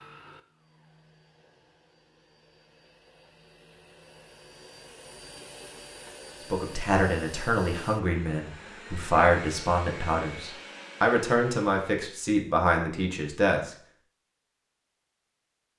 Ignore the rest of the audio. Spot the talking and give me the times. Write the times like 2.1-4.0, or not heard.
6.5-13.7.